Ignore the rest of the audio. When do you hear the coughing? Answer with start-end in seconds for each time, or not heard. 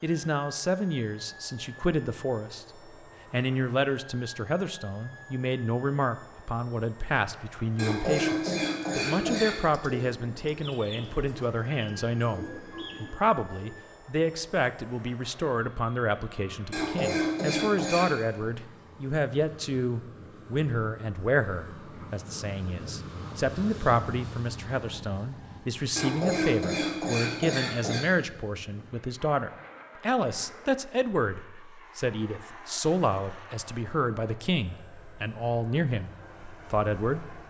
7.8-9.6, 16.7-18.1, 25.9-28.1.